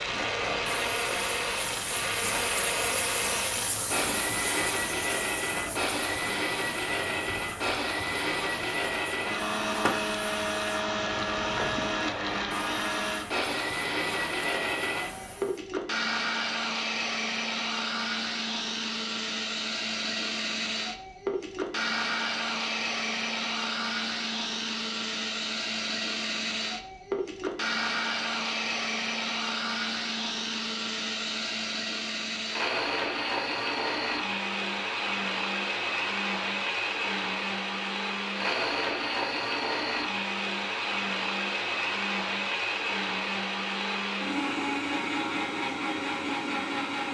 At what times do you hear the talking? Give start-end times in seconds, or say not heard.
not heard.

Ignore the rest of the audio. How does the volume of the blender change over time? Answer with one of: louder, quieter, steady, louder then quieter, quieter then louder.
steady.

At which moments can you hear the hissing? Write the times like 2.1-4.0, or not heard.
0.0-15.6.